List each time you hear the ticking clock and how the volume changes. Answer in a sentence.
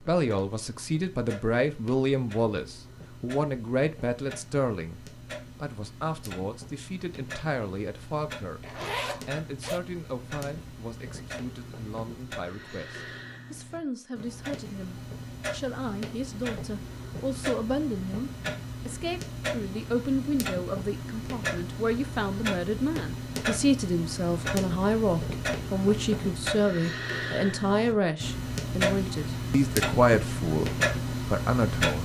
The ticking clock can be heard from 0.0 to 31.9 s, getting louder.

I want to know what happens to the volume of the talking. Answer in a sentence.
The loudness of the talking goes down, then up.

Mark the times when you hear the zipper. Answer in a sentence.
You can hear the zipper from 8.6 to 9.8 s.